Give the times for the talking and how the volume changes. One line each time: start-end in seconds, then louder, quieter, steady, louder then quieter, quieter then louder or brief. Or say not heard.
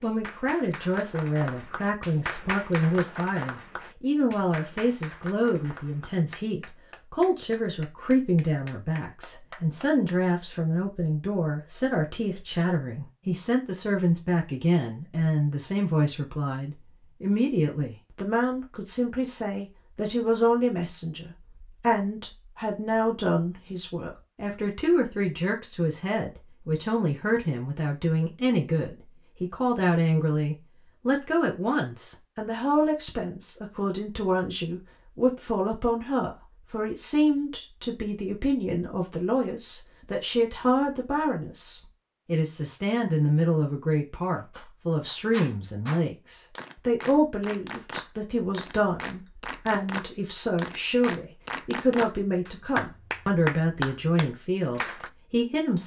0.0-55.8 steady.